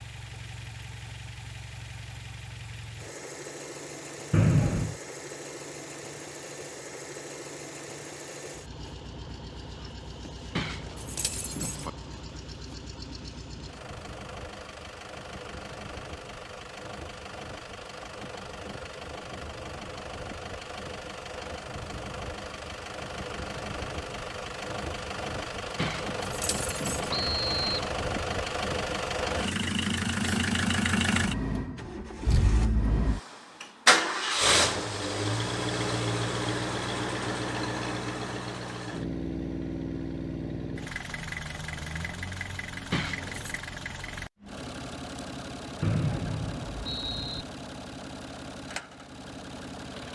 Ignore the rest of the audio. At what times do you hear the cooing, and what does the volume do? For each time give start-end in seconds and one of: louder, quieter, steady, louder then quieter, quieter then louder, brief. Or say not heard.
not heard.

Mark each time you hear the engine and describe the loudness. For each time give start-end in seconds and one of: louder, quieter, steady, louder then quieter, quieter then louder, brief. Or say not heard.
0.0-50.1 louder then quieter.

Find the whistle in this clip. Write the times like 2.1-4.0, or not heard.
4.3-5.0, 27.1-27.8, 45.8-47.5.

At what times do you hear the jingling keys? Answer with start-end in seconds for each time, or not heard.
10.6-11.9, 25.8-27.1, 42.9-43.6.